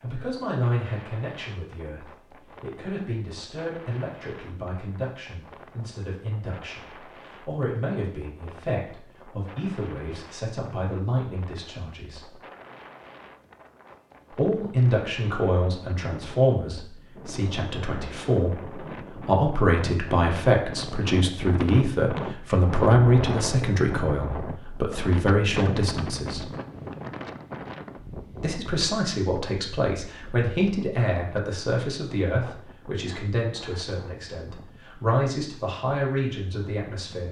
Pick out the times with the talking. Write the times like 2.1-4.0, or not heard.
0.0-12.3, 14.3-26.5, 28.4-37.2.